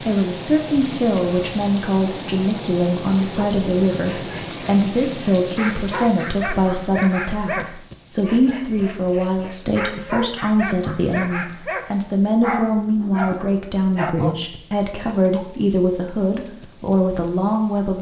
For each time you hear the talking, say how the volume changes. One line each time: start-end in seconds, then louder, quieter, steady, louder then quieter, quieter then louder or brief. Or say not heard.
0.1-17.9 steady.